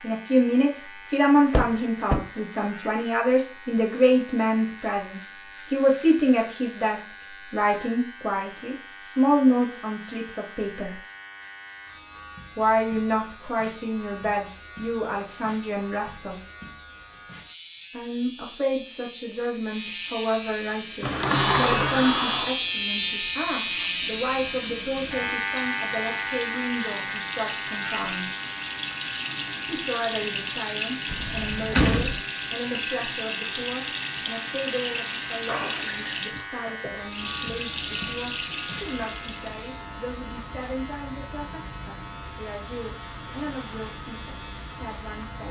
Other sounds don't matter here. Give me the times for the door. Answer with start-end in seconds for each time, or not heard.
1.5-2.2, 21.0-22.6, 31.1-32.2.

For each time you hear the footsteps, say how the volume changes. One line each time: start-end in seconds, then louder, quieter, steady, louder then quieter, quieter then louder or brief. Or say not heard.
not heard.